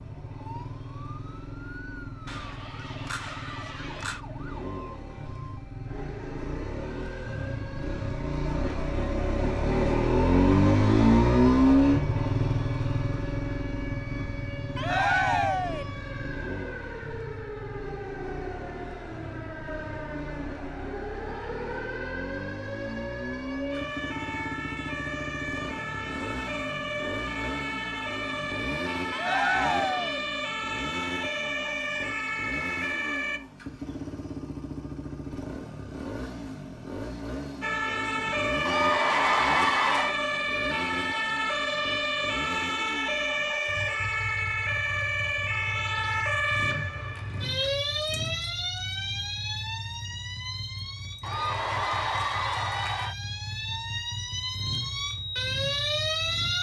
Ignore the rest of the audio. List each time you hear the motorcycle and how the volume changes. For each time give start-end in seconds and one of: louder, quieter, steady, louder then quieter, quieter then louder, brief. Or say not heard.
0.0-56.5 quieter.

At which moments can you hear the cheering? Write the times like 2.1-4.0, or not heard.
2.2-4.2, 14.8-15.8, 29.1-30.2, 38.6-40.1, 51.2-53.1.